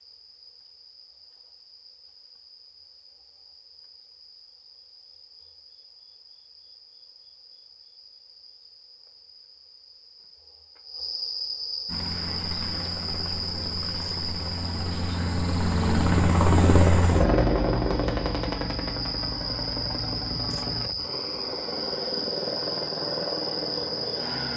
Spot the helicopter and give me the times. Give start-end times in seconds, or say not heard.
11.8-24.5.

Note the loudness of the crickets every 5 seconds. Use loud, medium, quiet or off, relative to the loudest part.
quiet, quiet, loud, loud, loud.